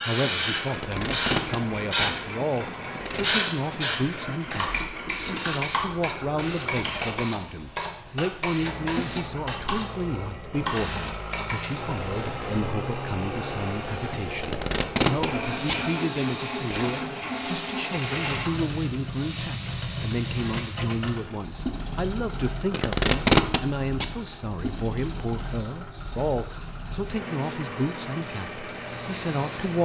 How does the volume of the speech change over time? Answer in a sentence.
The volume of the speech stays about the same.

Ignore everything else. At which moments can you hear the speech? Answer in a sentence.
You can hear the speech from 0.0 to 29.8 s.